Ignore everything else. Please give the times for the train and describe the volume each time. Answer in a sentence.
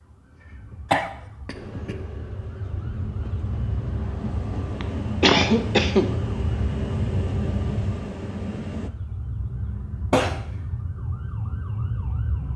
The train can be heard from 1.5 to 8.9 s, getting louder.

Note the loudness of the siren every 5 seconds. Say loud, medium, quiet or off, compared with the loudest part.
medium, loud, loud.